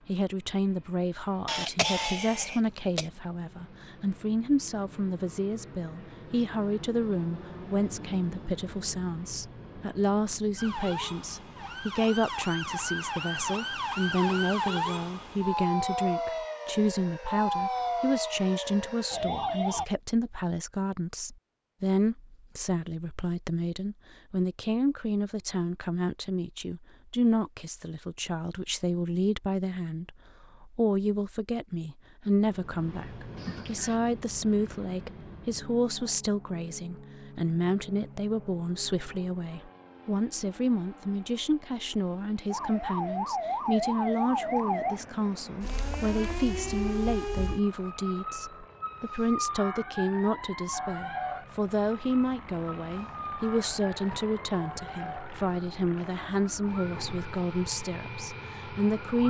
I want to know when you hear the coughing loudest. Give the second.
2 s.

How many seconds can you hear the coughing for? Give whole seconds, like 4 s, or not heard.
2 s.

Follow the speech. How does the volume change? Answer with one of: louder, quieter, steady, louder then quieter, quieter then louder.
steady.